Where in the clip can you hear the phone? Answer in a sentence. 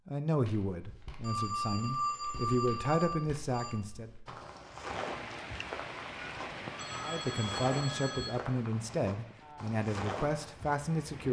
The phone can be heard from 1.2 to 3.8 s and from 6.8 to 8.3 s.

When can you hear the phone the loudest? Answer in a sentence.
The loudest moment of the phone is at 2 seconds.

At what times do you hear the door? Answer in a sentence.
You can't hear the door here.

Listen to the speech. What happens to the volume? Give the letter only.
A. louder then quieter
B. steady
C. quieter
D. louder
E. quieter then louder
B.